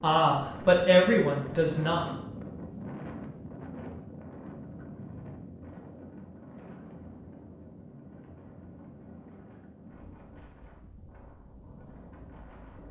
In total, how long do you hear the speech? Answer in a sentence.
The speech can be heard for 2 seconds in total.